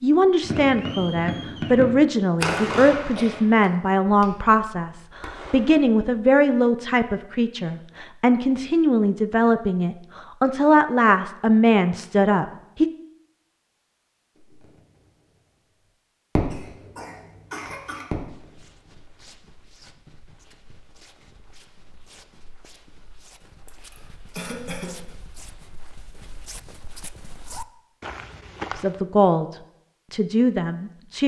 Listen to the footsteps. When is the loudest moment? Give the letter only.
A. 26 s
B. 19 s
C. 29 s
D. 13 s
C.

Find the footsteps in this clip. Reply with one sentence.
The footsteps can be heard from 17.6 to 29.1 s.